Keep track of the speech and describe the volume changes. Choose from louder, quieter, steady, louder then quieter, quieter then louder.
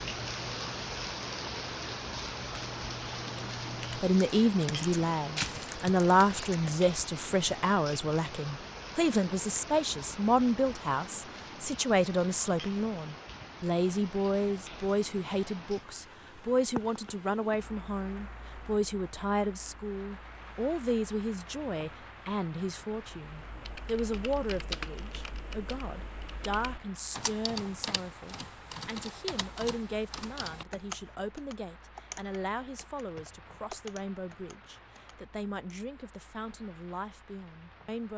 quieter.